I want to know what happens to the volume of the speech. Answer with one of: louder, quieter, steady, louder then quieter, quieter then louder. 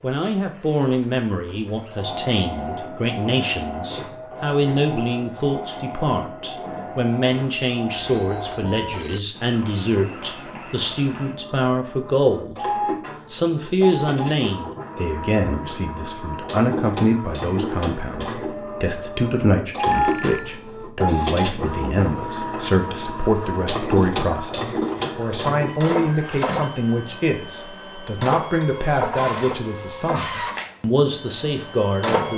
steady.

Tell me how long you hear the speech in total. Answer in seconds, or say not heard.
32 s.